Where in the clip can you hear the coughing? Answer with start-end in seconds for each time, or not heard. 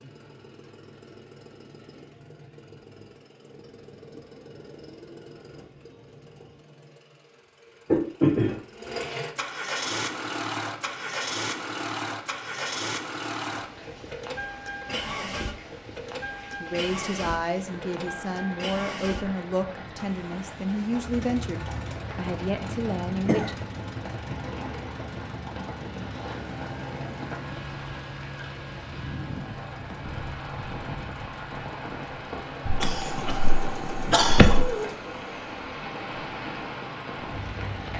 7.9-8.9, 22.6-23.5, 32.6-34.6.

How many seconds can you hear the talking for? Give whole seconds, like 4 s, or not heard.
7 s.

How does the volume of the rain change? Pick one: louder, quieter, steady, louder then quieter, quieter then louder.
louder.